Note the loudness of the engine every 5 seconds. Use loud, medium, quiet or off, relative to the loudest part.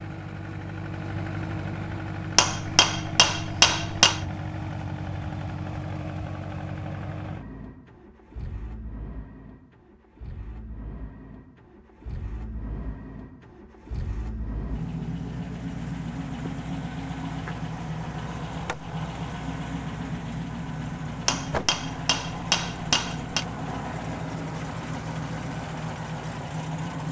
loud, medium, medium, loud, loud, loud.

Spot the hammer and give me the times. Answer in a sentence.
The hammer can be heard from 2.4 to 4.2 s and from 21.2 to 23.4 s.